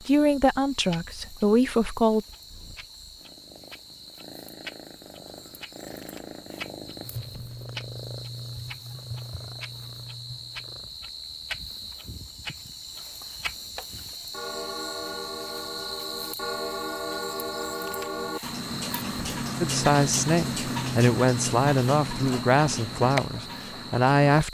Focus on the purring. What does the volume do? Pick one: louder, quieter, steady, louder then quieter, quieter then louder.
louder then quieter.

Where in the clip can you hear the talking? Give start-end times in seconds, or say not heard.
0.1-2.2, 19.6-24.4.